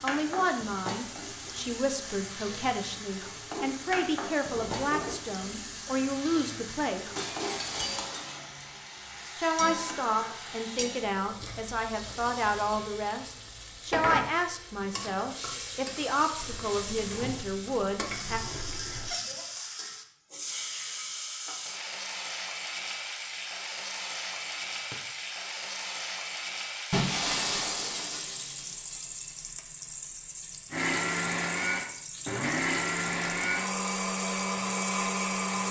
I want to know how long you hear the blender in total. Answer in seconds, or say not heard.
5 s.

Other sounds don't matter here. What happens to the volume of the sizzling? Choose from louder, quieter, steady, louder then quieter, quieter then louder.
steady.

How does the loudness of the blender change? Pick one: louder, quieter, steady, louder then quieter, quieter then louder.
steady.